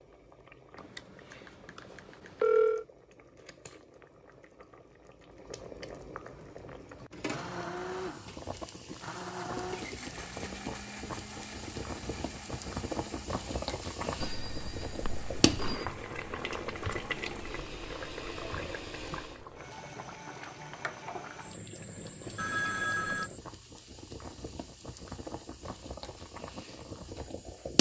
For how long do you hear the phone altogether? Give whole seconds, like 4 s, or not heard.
5 s.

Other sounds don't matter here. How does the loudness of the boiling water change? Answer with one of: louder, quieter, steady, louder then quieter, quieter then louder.
louder then quieter.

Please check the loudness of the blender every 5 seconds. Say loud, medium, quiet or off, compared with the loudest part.
off, loud, medium, medium, off, off.